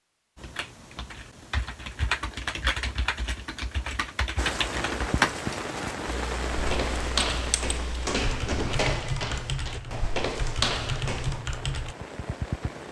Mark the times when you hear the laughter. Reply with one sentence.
You can't hear the laughter here.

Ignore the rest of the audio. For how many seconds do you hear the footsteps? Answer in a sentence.
The footsteps can be heard for 5 seconds in total.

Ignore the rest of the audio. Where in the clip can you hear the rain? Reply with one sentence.
The rain can be heard from 4.3 to 12.8 s.